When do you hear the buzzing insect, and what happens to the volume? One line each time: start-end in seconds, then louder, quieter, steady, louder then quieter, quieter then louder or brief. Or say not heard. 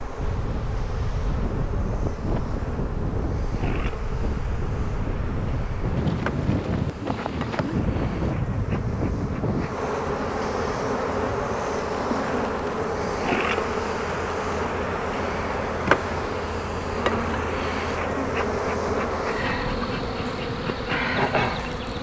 0.0-21.9 louder.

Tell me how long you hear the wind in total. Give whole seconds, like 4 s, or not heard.
22 s.